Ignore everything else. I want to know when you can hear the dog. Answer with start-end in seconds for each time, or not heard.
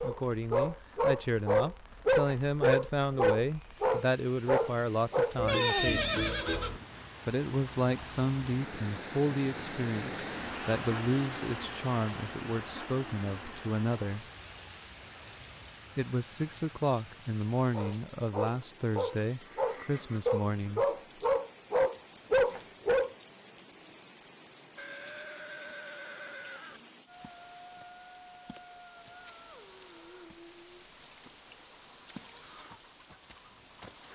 0.0-5.3, 17.7-23.1.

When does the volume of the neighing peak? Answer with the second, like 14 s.
6 s.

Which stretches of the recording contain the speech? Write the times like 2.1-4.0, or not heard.
0.0-6.2, 7.2-14.2, 15.9-20.9.